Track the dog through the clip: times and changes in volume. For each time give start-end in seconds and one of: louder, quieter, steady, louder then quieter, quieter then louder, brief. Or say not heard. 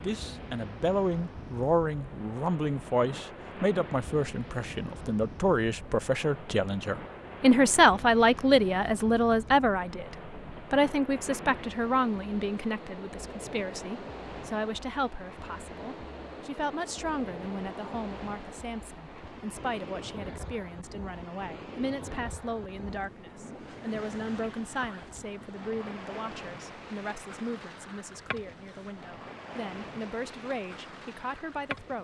not heard.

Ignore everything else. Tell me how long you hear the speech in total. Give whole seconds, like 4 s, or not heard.
32 s.